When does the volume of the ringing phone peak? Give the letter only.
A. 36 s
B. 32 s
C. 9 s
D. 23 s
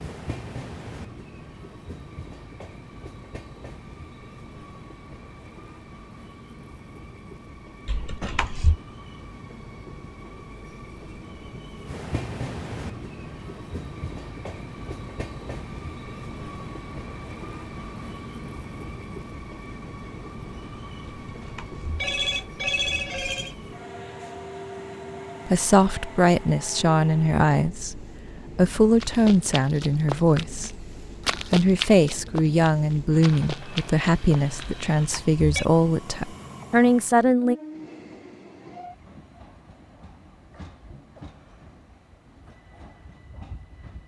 D.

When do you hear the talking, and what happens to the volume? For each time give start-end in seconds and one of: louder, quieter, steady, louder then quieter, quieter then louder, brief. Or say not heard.
25.4-37.5 steady.